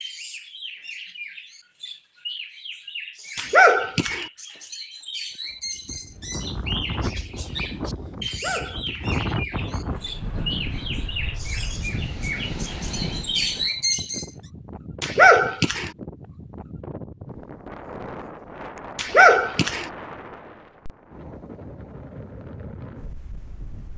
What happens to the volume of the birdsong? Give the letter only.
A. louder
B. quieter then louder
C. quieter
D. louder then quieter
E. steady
A.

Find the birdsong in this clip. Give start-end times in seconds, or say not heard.
0.0-14.3.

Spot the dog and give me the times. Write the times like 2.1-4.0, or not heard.
3.4-4.2, 8.2-9.2, 15.0-15.9, 18.9-19.9.